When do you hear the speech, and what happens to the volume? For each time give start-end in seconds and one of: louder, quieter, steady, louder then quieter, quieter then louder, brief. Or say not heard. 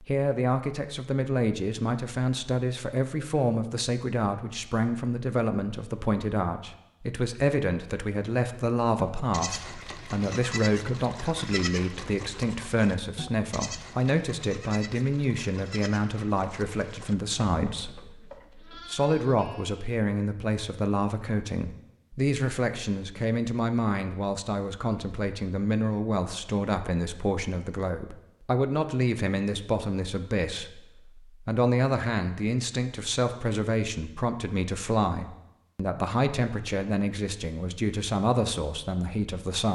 0.0-39.7 steady.